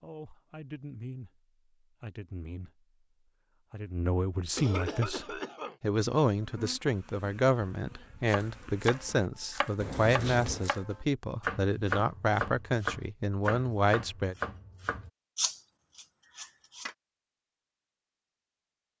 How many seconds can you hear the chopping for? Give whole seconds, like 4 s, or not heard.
9 s.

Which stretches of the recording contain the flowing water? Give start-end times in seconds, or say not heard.
not heard.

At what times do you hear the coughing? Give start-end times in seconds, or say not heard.
4.5-5.8, 9.8-10.7.